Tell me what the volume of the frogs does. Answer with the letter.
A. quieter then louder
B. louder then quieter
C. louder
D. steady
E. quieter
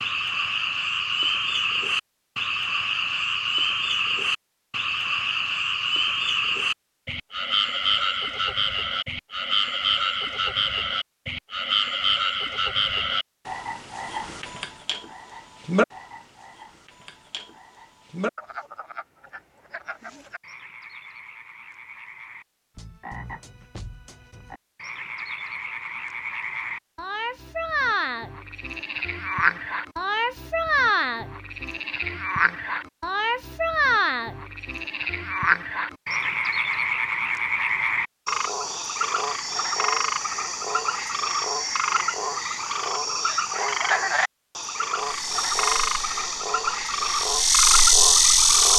A.